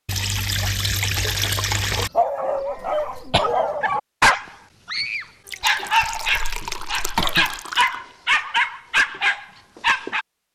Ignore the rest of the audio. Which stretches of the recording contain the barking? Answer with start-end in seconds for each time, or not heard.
2.1-10.2.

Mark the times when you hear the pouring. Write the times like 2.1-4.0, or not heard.
0.1-2.1, 5.5-8.0.